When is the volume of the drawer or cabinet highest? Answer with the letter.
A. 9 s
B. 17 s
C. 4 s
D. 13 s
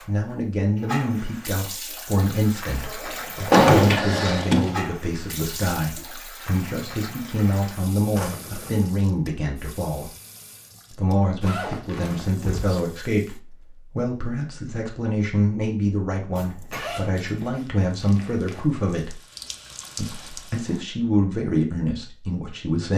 C.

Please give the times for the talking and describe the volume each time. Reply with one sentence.
You can hear the talking from 0.1 to 10.1 s, at a steady volume; from 10.9 to 19.2 s, at a steady volume; and briefly from 19.9 to 22.9 s.